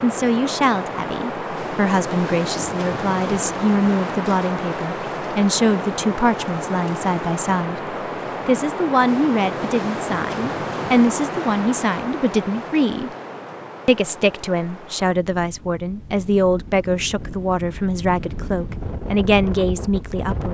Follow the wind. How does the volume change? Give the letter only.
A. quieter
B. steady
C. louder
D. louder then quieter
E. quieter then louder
A.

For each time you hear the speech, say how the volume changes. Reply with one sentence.
You can hear the speech from 0.0 to 13.1 s, at a steady volume; and from 13.8 to 20.5 s, at a steady volume.